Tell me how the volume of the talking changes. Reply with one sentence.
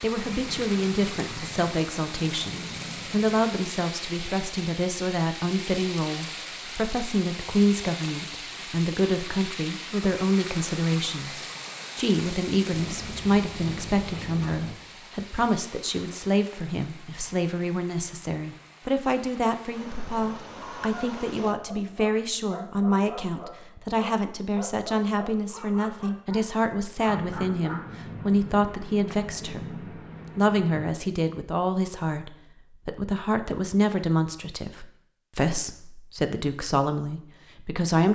The loudness of the talking stays about the same.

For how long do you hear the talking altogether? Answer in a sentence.
The talking can be heard for 38 seconds in total.